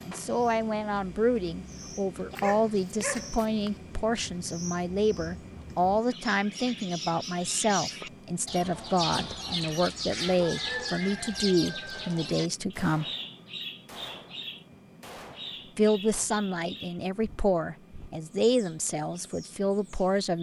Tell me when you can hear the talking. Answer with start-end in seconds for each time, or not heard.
0.1-13.1, 15.8-20.3.